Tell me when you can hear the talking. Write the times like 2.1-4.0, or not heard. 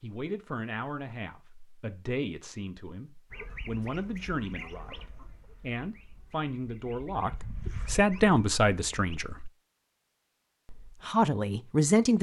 0.0-9.5, 10.7-12.1.